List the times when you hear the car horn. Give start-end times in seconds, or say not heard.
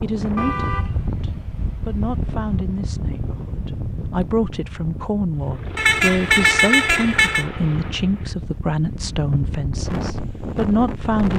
0.3-2.3, 5.8-7.5.